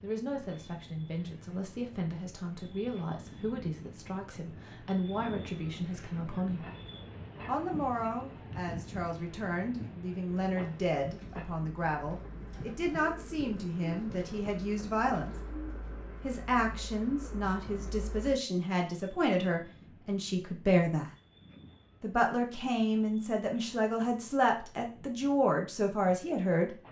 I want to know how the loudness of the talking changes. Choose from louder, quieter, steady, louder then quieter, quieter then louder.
louder.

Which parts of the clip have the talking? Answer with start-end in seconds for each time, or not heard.
0.0-6.7, 7.5-15.4, 16.2-21.1, 22.0-26.8.